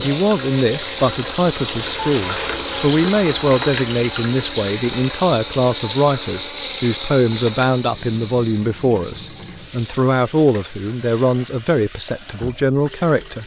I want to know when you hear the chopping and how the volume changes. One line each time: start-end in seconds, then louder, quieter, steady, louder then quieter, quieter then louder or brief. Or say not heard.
not heard.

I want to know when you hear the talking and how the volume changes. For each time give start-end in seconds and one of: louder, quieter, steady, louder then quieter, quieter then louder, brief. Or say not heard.
0.0-13.4 steady.